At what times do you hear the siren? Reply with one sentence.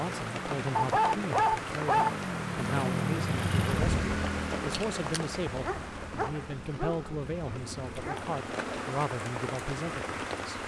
You can't hear the siren here.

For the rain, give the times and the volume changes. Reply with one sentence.
You can hear the rain from 0.0 to 10.6 s, getting quieter then louder.